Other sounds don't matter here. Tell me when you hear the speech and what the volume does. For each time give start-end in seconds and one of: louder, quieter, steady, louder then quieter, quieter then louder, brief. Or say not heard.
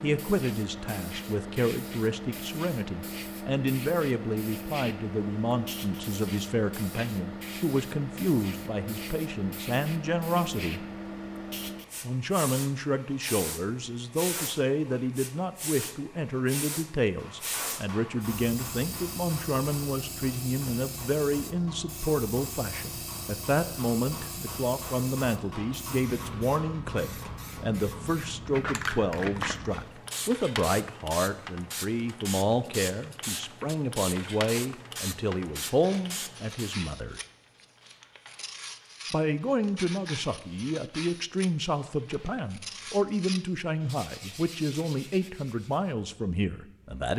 0.0-10.8 steady
12.0-37.2 steady
39.1-47.1 steady.